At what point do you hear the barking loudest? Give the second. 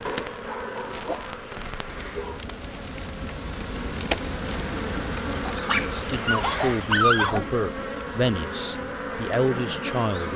7 s.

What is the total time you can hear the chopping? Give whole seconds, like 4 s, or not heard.
not heard.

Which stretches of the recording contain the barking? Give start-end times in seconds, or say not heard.
0.1-2.4, 5.5-7.5.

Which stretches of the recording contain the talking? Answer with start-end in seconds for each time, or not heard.
5.7-10.3.